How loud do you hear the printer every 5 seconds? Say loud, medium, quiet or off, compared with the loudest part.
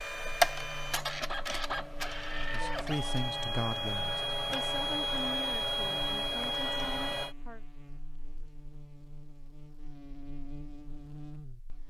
loud, loud, off.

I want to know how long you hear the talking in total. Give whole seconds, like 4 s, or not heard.
5 s.